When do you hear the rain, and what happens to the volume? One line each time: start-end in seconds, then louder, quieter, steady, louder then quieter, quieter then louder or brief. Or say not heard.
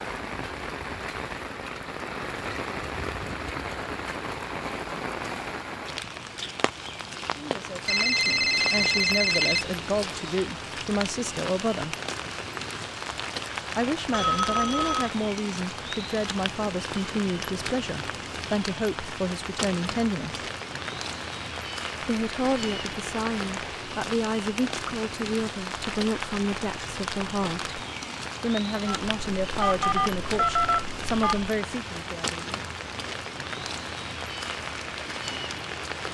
0.0-36.0 steady.